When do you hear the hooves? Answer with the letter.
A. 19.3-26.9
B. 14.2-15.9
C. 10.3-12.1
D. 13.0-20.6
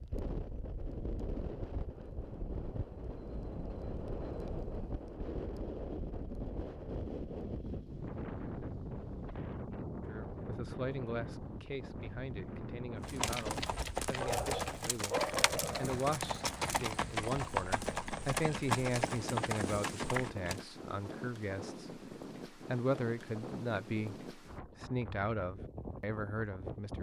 D.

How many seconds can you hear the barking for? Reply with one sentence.
You can hear the barking for 2 seconds altogether.